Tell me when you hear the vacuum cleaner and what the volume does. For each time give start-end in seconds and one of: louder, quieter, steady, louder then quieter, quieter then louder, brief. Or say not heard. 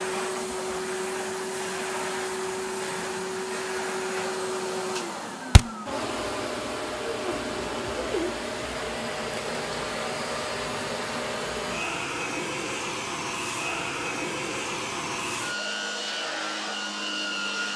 0.0-17.7 steady.